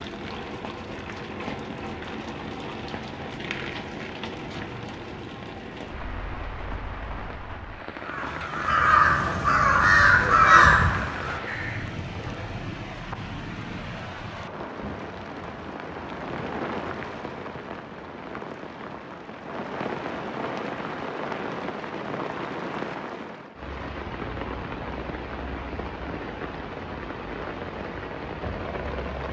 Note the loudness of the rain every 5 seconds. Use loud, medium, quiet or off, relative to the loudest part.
loud, medium, loud, loud, loud, loud.